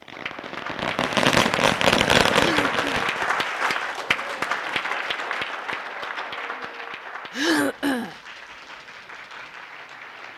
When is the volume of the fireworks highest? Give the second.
2 s.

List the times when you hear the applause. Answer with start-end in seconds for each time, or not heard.
0.0-10.3.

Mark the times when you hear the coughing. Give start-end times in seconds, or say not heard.
2.3-2.9, 7.3-8.2.